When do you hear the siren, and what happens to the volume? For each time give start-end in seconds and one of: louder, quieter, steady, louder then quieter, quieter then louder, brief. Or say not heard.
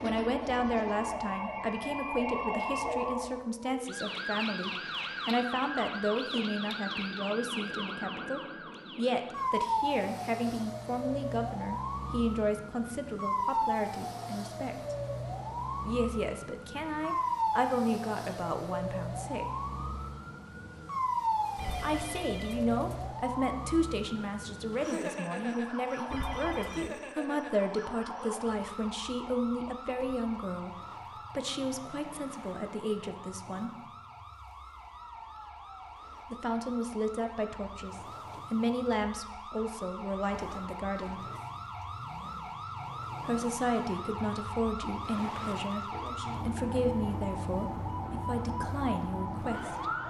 0.0-50.0 quieter then louder.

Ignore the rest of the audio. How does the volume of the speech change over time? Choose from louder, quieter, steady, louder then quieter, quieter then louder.
steady.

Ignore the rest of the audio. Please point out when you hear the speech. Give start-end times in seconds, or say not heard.
0.0-14.9, 15.8-19.4, 21.8-33.9, 36.2-41.3, 43.2-50.0.